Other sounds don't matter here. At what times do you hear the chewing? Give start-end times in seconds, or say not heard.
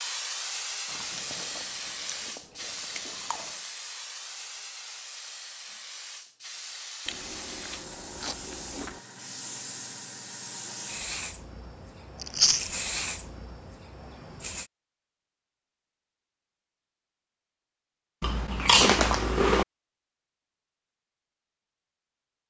0.8-3.5, 7.0-9.0, 12.2-12.7, 18.2-19.6.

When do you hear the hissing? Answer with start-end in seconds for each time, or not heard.
0.0-14.7.